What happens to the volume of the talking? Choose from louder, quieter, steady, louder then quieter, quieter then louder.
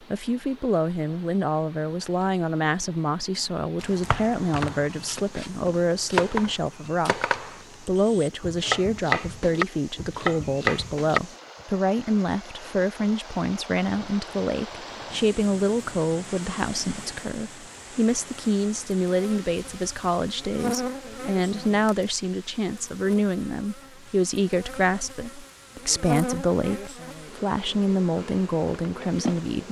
steady.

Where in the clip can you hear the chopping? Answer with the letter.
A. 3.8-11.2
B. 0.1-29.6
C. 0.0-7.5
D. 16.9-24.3
A.